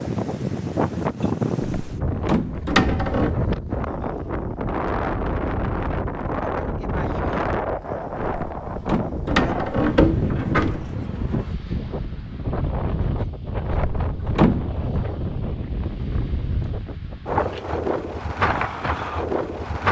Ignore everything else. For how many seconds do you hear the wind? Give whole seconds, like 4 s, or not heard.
20 s.